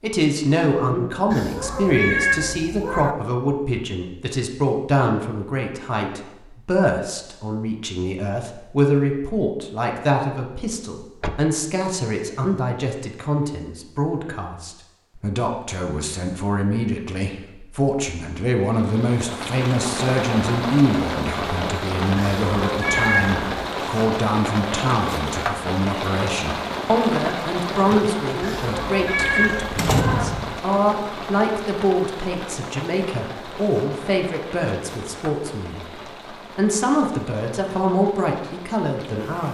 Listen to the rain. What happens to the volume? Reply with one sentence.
The volume of the rain goes down.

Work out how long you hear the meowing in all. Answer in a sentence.
The meowing can be heard for 5 seconds in total.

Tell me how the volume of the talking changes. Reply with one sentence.
The loudness of the talking stays about the same.